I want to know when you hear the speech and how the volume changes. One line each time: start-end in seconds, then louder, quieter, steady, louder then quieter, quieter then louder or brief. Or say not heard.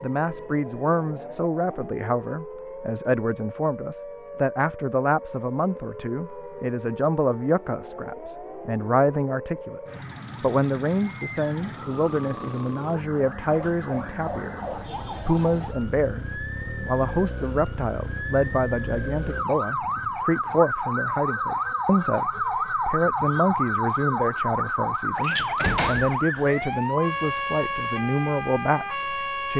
0.0-29.5 steady.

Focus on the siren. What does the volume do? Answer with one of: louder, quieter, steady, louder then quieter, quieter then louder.
louder.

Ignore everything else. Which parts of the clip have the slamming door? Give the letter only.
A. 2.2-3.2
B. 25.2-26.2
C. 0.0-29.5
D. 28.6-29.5
B.